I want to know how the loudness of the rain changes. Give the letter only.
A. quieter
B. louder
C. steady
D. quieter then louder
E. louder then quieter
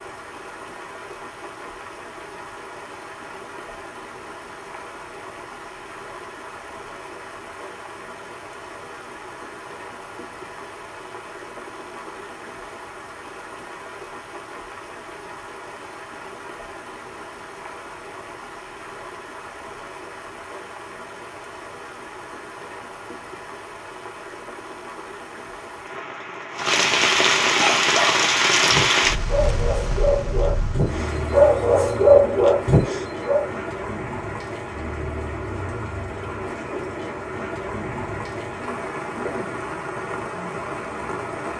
E.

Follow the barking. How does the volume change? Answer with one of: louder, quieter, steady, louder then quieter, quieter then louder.
louder.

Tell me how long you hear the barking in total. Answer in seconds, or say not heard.
6 s.